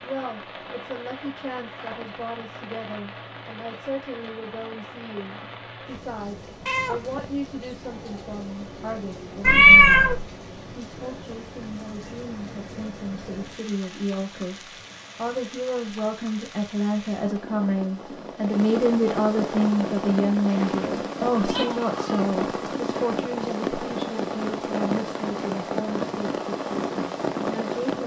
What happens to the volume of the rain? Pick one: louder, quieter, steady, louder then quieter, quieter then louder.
louder.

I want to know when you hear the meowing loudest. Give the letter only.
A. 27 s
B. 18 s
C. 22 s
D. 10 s
D.